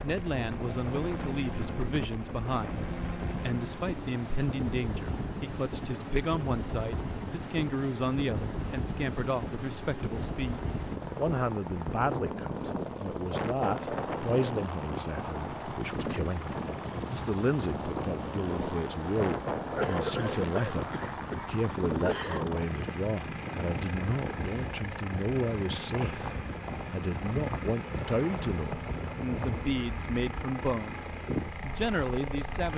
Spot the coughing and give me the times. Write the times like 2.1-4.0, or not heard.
19.8-22.4.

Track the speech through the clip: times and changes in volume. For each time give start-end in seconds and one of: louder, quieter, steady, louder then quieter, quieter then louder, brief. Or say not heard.
0.0-32.7 steady.